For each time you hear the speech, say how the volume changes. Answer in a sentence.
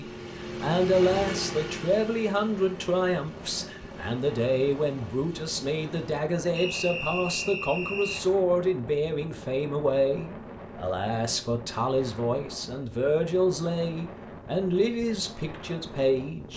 The speech can be heard from 0.0 to 16.5 s, at a steady volume.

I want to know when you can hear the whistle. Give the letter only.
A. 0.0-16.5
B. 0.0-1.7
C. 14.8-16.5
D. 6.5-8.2
D.